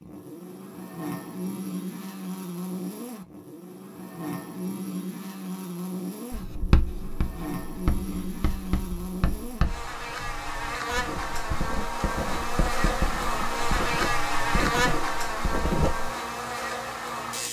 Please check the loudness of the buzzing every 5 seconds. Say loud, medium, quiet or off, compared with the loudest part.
medium, medium, loud, loud.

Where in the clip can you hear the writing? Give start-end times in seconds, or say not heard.
6.3-16.1.